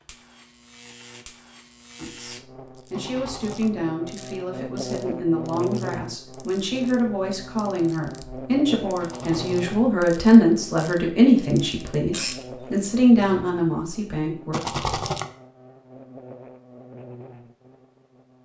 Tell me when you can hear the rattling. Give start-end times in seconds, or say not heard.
2.9-3.7, 8.9-9.8, 14.5-15.2.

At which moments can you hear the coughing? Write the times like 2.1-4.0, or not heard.
not heard.